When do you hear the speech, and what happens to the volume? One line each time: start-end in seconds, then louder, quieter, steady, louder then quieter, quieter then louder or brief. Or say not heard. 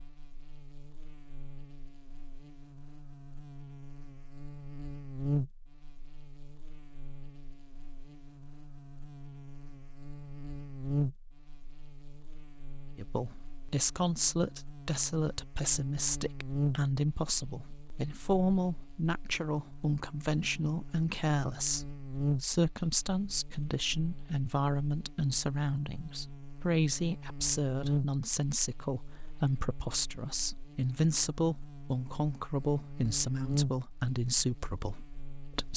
12.9-35.7 steady.